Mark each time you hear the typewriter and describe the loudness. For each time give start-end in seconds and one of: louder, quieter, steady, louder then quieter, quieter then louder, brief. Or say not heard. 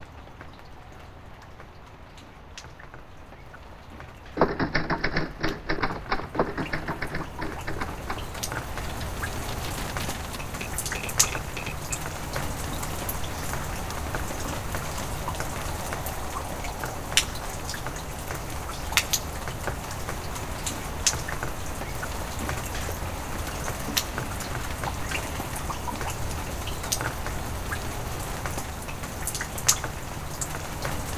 4.3-11.9 quieter.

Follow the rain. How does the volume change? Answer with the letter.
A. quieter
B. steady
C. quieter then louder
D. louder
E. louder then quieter
D.